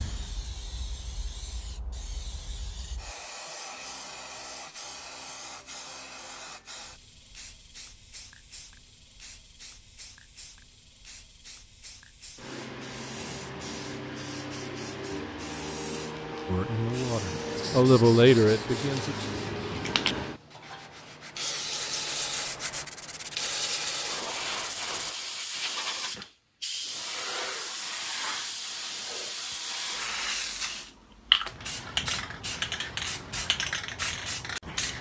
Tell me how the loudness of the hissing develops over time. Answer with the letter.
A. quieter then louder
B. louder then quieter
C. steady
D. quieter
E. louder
E.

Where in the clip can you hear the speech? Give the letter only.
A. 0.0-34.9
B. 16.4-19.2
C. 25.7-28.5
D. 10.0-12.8
B.